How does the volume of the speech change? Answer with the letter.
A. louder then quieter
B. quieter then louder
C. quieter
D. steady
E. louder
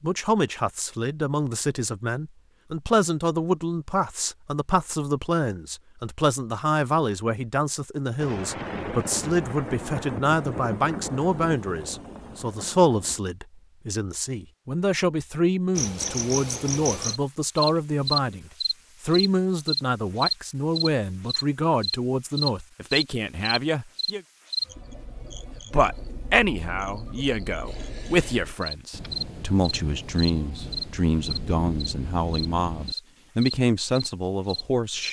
D.